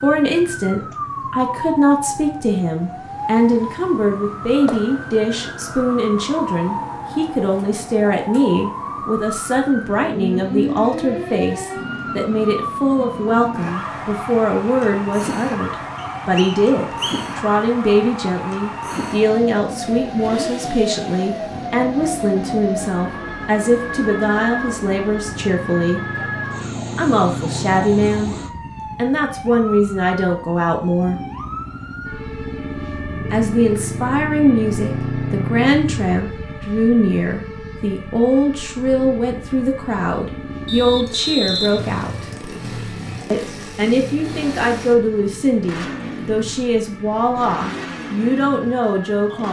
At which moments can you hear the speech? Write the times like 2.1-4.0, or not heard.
0.0-26.1, 26.9-28.4, 28.9-31.2, 33.3-42.3, 43.3-49.4.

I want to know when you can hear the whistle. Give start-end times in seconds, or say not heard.
15.9-17.4, 40.6-42.0.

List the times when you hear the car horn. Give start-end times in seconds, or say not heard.
not heard.